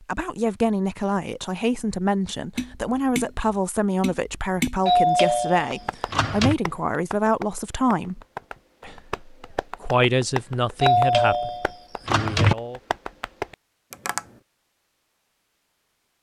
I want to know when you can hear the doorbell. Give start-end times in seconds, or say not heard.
4.8-6.5, 10.8-12.6.